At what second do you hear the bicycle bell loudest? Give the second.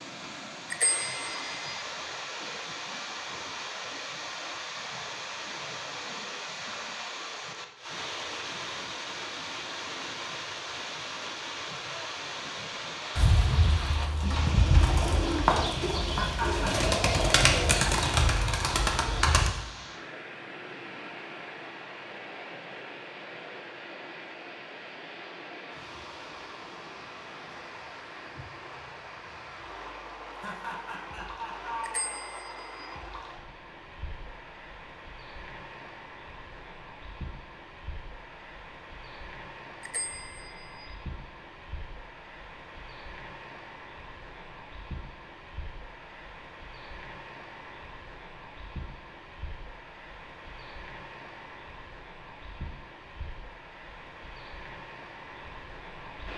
1 s.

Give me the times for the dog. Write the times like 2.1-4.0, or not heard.
not heard.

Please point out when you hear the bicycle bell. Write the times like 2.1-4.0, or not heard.
0.7-1.8, 31.8-33.0, 39.8-41.0.